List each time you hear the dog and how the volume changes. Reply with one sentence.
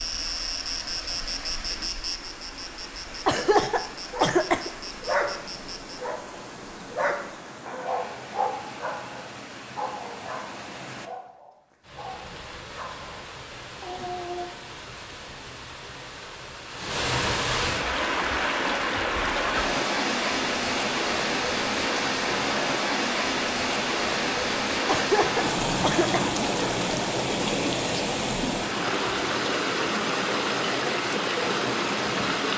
You can hear the dog from 4.1 to 14.5 s, getting quieter.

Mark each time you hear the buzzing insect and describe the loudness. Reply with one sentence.
The buzzing insect can be heard from 0.0 to 6.0 s, getting quieter.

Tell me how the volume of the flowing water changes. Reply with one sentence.
The loudness of the flowing water goes up.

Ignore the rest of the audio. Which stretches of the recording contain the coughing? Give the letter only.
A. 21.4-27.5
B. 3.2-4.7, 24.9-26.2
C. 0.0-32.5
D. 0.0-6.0
B.